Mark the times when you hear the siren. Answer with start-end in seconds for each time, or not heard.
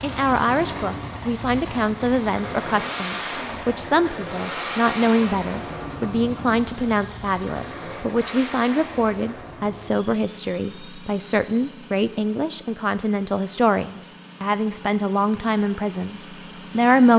not heard.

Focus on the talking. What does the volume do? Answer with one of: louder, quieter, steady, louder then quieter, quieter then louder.
steady.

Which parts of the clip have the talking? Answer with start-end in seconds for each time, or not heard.
0.0-17.1.